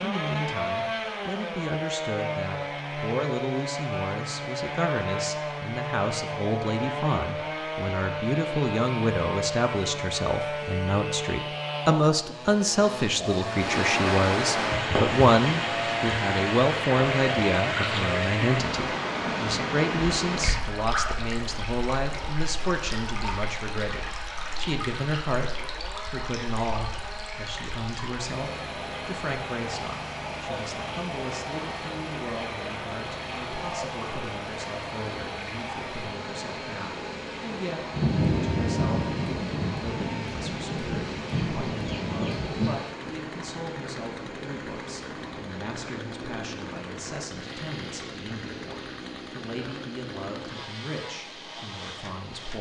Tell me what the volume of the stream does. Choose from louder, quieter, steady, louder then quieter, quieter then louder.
quieter.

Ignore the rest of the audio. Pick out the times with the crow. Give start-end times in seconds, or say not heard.
not heard.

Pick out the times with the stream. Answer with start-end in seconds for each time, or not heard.
13.4-52.5.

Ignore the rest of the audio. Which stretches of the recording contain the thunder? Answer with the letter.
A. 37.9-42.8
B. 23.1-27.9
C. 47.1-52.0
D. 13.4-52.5
A.